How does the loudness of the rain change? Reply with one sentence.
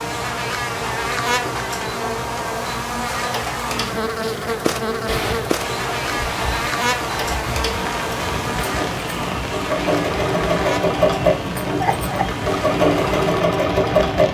The loudness of the rain stays about the same.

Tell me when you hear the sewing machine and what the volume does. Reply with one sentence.
The sewing machine can be heard from 0.0 to 14.3 s, getting louder.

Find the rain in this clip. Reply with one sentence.
The rain can be heard from 5.0 to 14.3 s.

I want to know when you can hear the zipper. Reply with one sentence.
You can't hear the zipper here.